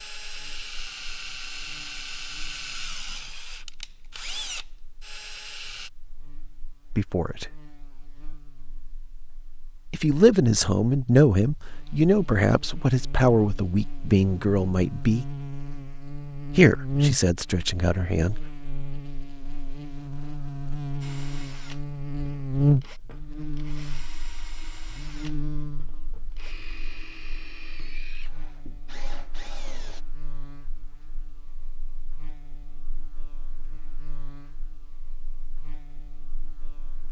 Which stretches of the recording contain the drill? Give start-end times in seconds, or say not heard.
0.0-5.9, 21.0-30.1.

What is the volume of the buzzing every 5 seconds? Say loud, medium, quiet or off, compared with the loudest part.
quiet, quiet, quiet, loud, loud, quiet, quiet, quiet.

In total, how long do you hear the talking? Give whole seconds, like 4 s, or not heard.
8 s.